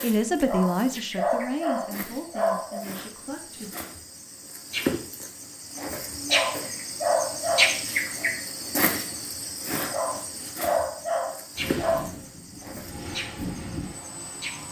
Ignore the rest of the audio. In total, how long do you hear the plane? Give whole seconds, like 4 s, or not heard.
3 s.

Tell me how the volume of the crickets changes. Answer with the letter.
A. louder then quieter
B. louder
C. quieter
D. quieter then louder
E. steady
A.